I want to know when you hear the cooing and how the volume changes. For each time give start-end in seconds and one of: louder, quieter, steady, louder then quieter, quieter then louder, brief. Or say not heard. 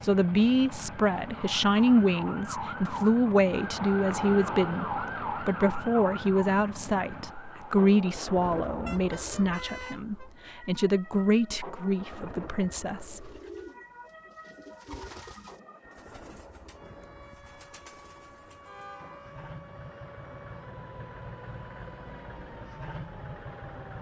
13.1-18.8 quieter then louder.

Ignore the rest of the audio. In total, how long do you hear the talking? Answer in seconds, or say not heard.
13 s.